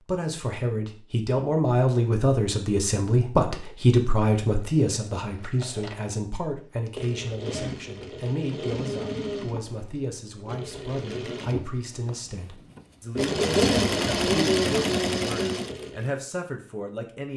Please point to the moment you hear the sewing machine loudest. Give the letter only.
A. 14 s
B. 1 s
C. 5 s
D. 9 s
A.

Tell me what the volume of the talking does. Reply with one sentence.
The volume of the talking goes down.